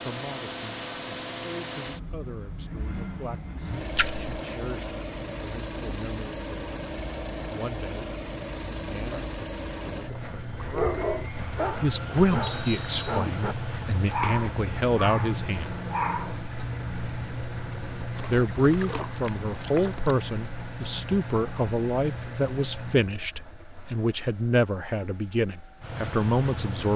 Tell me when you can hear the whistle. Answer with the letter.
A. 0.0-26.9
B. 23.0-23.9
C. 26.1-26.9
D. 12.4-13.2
D.